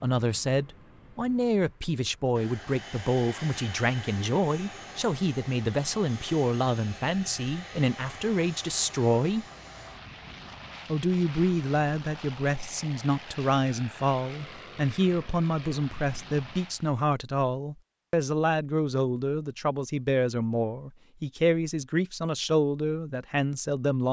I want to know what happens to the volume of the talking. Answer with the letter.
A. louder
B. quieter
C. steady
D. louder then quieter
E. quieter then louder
C.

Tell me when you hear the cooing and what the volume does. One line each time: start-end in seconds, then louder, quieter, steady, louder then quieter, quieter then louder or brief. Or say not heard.
not heard.